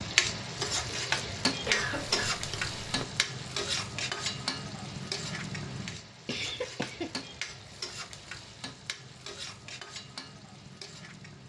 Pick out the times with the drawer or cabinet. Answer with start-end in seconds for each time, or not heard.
not heard.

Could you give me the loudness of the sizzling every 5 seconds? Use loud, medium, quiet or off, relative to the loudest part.
loud, medium, quiet.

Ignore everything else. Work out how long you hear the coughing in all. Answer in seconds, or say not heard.
2 s.